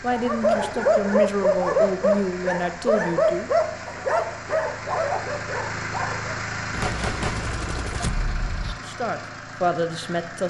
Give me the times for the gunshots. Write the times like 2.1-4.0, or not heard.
6.7-8.8.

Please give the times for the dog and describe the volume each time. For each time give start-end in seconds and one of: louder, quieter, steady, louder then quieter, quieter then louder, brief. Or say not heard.
0.1-6.4 quieter.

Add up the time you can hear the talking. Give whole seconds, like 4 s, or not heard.
5 s.